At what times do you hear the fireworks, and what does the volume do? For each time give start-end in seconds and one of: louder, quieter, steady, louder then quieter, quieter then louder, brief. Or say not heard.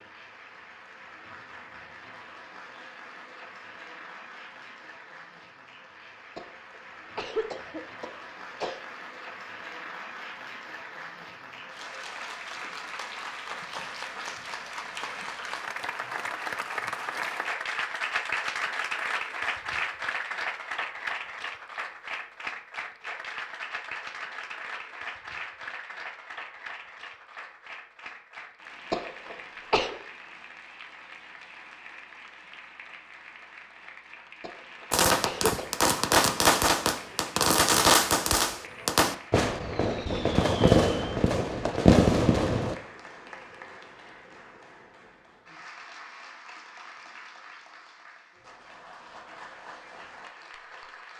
34.9-42.8 steady.